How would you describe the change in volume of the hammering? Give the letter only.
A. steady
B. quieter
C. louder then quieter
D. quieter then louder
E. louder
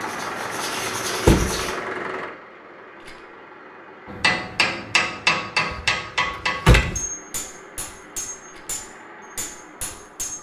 B.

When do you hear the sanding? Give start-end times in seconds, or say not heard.
0.0-1.8.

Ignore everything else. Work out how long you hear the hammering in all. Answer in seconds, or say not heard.
6 s.